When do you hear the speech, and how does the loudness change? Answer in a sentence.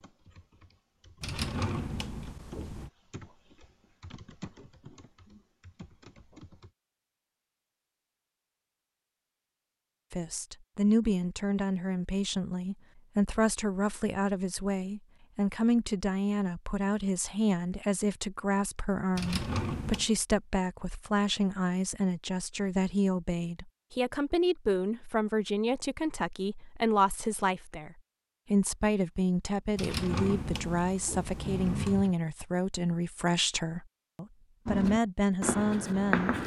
The speech can be heard from 10.1 to 36.3 s, at a steady volume.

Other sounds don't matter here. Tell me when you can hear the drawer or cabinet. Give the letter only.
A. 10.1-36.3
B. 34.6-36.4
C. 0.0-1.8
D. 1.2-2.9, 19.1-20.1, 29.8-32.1
D.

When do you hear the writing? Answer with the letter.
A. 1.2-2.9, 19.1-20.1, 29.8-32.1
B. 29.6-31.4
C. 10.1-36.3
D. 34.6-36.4
D.